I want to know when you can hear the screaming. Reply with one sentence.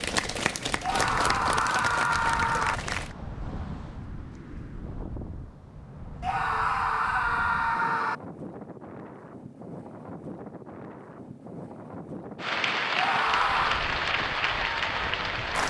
The screaming can be heard from 0.8 to 2.8 s, from 6.2 to 8.2 s and from 12.9 to 13.8 s.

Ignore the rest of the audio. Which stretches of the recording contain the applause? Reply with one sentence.
The applause can be heard from 0.0 to 3.1 s and from 12.3 to 15.6 s.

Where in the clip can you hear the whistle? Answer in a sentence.
The whistle can't be heard in this clip.